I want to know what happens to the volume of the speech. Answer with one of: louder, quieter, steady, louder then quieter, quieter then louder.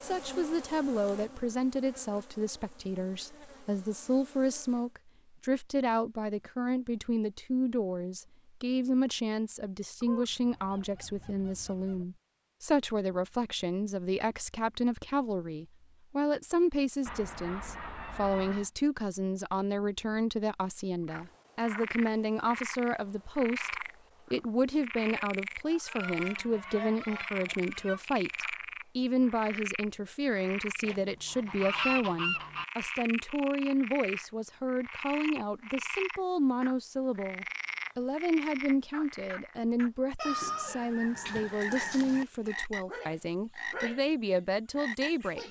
steady.